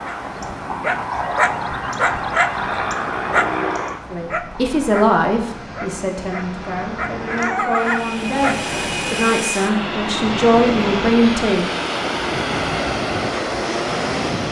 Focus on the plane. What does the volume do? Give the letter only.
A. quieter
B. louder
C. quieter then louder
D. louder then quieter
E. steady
C.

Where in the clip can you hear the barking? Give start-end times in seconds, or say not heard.
0.1-8.6.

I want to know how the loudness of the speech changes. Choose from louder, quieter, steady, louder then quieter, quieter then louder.
quieter then louder.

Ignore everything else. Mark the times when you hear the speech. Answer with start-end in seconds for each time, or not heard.
4.1-11.7.